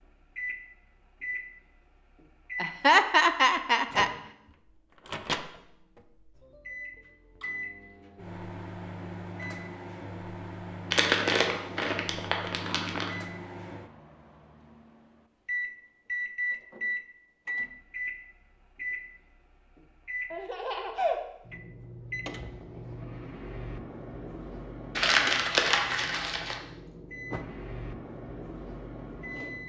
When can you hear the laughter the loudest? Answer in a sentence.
The volume of the laughter peaks at 3 seconds.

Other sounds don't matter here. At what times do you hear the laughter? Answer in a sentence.
You can hear the laughter from 2.6 to 4.1 s and from 20.3 to 21.2 s.